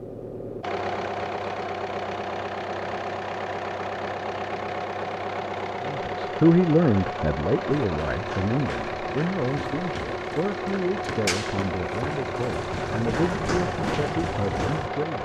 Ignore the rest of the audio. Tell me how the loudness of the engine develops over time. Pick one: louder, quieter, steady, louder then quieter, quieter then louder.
steady.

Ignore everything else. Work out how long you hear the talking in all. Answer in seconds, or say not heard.
9 s.